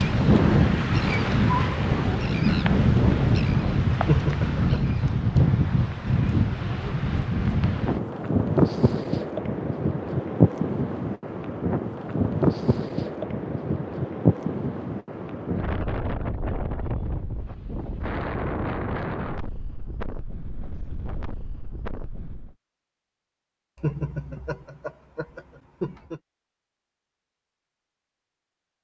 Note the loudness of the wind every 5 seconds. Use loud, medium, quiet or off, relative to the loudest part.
loud, loud, loud, medium, quiet, off.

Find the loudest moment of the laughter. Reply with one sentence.
The loudest moment of the laughter is at 4 seconds.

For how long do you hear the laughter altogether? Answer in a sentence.
You can hear the laughter for 3 seconds altogether.